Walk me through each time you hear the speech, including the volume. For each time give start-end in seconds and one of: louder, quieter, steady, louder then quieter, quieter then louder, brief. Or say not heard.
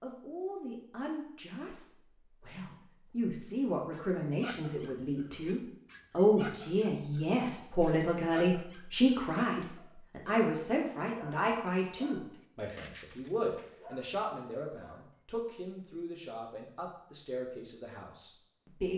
0.0-18.9 louder then quieter.